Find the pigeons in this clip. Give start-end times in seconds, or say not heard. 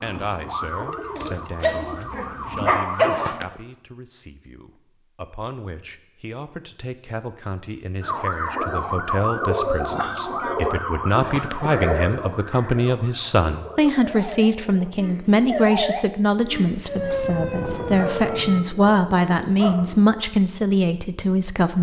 0.0-3.6, 8.0-15.8.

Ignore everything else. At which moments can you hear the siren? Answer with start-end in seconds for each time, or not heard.
0.0-3.4, 8.0-18.6.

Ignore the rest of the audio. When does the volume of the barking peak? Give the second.
3 s.